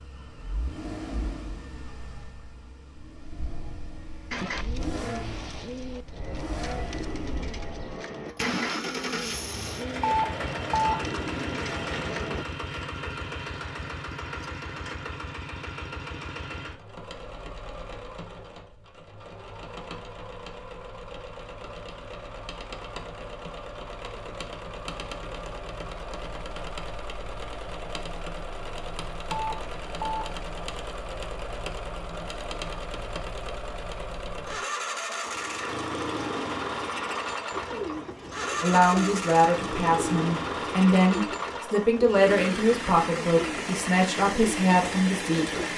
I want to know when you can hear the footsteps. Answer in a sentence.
You can't hear the footsteps here.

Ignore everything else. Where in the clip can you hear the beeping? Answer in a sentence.
The beeping can be heard from 10.0 to 10.9 s and from 29.2 to 30.4 s.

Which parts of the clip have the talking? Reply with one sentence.
The talking can be heard from 38.6 to 45.7 s.